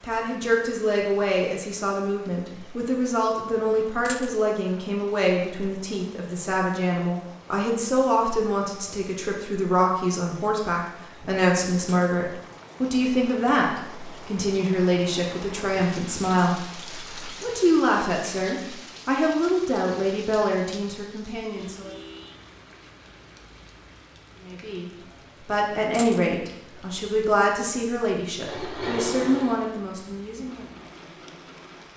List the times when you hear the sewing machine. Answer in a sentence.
The sewing machine can be heard from 28.4 to 31.9 s.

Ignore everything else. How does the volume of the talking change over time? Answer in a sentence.
The volume of the talking stays about the same.